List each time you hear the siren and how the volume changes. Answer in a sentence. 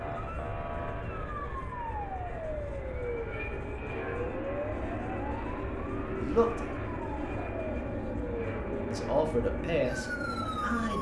The siren can be heard from 0.0 to 10.9 s, at a steady volume.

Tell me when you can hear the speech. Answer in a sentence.
The speech can be heard from 6.1 to 6.7 s and from 8.9 to 10.9 s.